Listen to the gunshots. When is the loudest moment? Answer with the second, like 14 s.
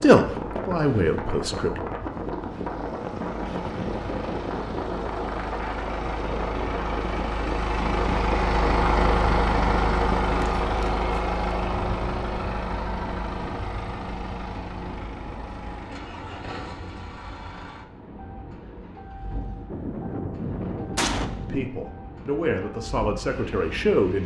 21 s.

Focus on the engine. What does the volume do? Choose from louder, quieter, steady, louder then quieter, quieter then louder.
louder then quieter.